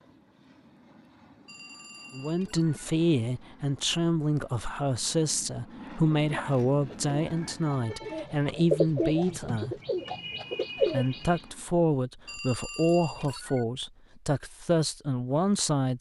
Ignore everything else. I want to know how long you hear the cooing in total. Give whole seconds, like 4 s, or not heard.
5 s.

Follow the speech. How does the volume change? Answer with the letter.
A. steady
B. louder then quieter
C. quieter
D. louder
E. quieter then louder
A.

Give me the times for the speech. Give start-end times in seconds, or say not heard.
2.1-9.8, 10.9-15.9.